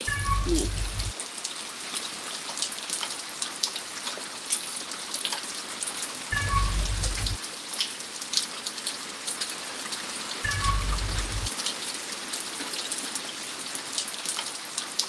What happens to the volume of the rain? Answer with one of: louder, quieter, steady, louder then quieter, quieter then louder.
steady.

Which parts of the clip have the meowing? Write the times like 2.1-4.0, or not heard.
0.1-1.1, 6.3-7.4, 10.4-11.5.